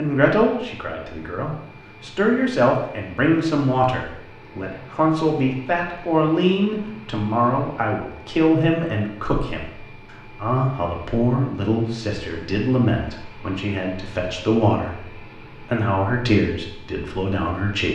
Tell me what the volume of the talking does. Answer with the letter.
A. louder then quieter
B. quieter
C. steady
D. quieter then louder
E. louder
C.